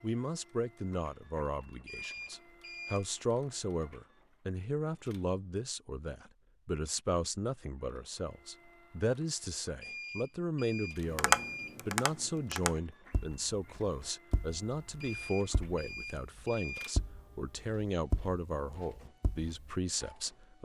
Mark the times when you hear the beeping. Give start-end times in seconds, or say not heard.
1.9-3.0, 9.8-11.8, 15.0-16.9.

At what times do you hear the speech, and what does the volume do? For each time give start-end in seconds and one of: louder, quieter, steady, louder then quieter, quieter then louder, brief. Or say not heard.
0.0-20.6 steady.